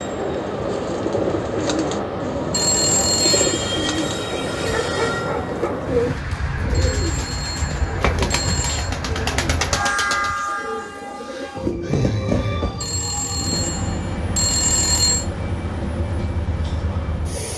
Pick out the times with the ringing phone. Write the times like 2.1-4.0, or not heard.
2.5-3.6, 6.7-8.9, 12.8-15.2.